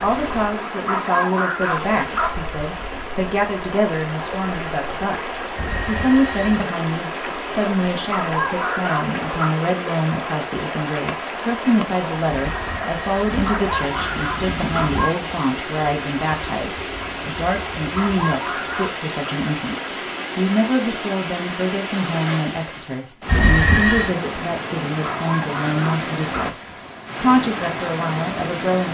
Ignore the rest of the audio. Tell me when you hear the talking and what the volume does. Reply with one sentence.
The talking can be heard from 0.0 to 28.8 s, at a steady volume.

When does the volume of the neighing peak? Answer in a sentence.
The loudest moment of the neighing is at 24 seconds.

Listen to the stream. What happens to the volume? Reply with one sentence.
The loudness of the stream stays about the same.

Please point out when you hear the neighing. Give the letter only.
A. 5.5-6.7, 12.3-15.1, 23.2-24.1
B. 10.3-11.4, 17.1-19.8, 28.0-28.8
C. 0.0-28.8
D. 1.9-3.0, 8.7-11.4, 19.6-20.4
A.